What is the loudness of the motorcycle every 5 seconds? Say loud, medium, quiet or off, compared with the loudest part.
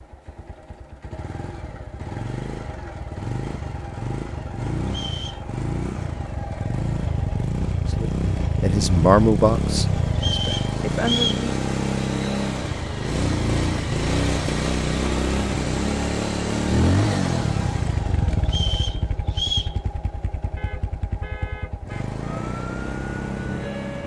medium, loud, loud, loud, medium.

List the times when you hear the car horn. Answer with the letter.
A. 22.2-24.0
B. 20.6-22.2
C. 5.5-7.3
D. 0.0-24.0
B.